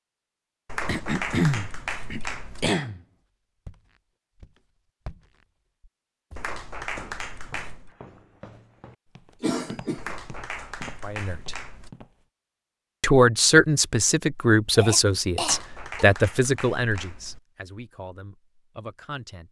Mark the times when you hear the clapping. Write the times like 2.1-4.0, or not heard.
0.7-2.7, 6.3-7.9, 9.9-11.9, 15.4-17.4.